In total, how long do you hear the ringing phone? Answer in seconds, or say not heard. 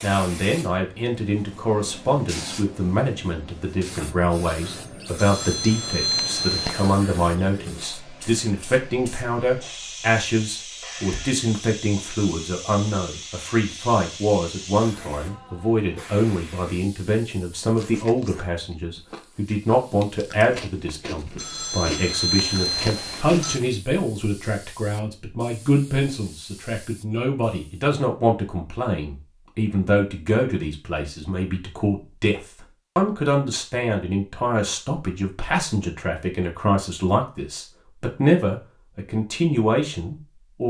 4 s.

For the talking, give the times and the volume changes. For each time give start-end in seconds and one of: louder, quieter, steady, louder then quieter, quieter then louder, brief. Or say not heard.
0.0-40.6 steady.